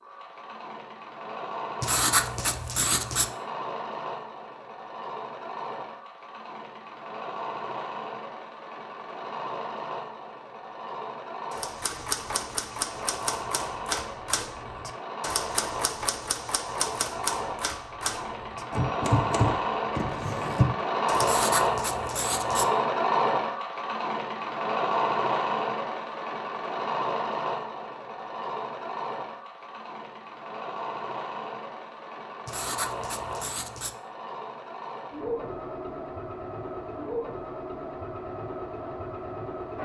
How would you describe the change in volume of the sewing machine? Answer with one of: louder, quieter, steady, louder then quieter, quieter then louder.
louder then quieter.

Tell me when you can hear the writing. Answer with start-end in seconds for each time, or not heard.
1.8-3.3, 21.2-22.6, 32.5-34.0.